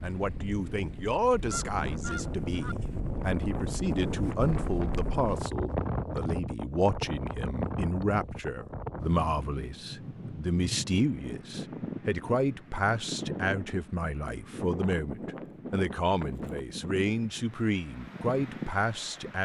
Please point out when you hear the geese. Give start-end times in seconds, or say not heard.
1.5-2.8.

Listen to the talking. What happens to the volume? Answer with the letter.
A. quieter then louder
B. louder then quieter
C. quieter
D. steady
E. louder
D.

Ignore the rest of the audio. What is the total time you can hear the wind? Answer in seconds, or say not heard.
19 s.